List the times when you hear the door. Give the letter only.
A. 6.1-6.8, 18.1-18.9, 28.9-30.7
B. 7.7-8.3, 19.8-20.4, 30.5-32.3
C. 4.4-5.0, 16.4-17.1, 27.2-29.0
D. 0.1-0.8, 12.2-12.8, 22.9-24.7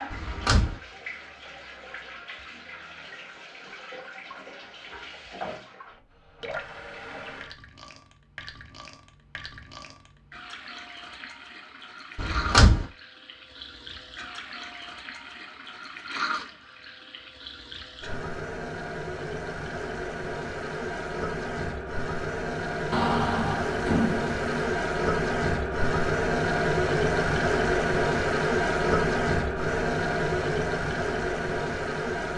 D.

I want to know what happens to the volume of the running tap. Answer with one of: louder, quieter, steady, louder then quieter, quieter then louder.
louder.